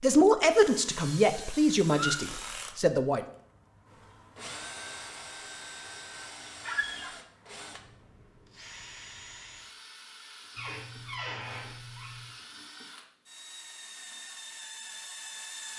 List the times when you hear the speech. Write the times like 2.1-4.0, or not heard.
0.0-3.2.